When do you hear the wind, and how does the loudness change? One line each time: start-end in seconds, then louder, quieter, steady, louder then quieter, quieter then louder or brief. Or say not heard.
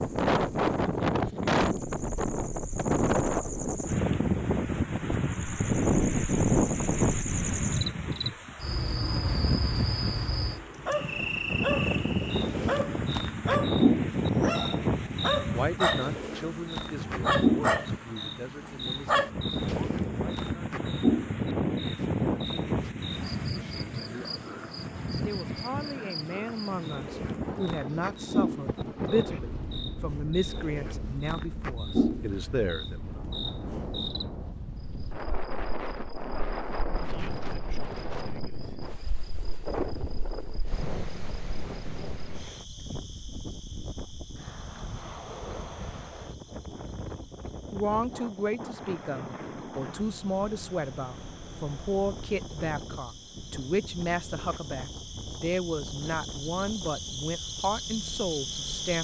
0.0-58.9 quieter.